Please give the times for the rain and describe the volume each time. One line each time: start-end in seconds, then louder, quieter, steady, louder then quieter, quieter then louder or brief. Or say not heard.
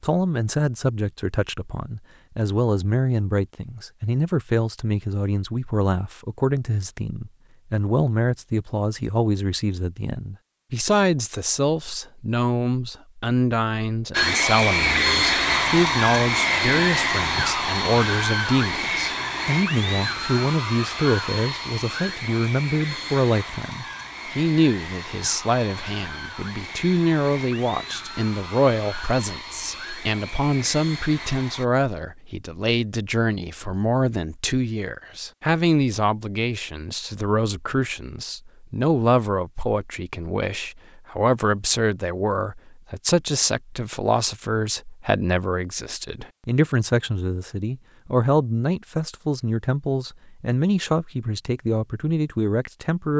not heard.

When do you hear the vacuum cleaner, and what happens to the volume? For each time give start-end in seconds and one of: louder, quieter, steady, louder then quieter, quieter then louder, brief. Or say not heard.
14.1-31.6 quieter.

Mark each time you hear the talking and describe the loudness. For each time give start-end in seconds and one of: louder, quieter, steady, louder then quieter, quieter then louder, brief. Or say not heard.
0.0-53.1 steady.